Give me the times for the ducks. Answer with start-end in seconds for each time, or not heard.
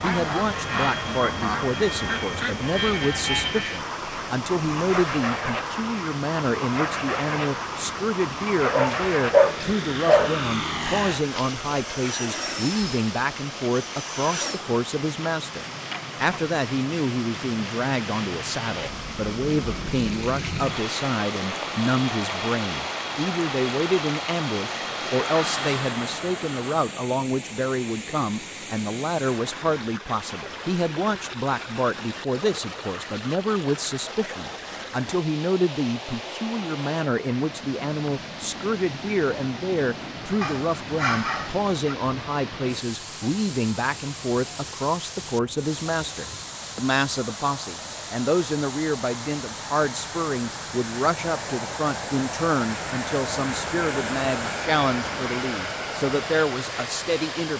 0.0-3.6.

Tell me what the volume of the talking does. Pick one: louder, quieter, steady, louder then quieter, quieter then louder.
steady.